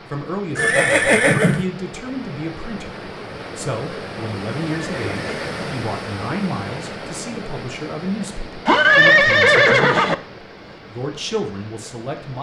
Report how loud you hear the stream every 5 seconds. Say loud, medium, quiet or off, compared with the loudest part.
loud, loud, medium.